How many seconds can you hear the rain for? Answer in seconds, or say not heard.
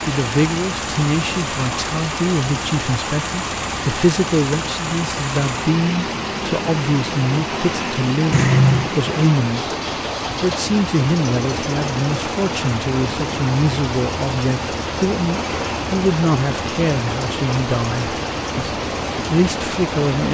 20 s.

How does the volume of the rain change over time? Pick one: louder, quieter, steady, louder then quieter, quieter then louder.
steady.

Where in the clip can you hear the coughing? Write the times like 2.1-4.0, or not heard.
8.3-8.9.